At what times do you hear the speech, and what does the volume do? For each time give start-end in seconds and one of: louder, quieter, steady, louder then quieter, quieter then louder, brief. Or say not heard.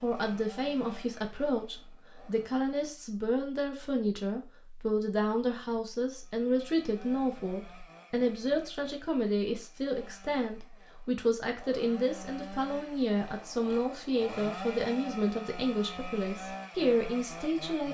0.0-17.8 steady.